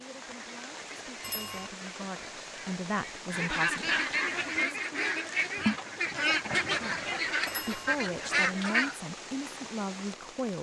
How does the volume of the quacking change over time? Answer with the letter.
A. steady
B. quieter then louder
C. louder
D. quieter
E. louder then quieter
C.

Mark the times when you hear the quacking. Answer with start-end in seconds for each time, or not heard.
0.2-9.0.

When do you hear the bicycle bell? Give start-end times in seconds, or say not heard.
1.2-1.7, 7.5-7.9.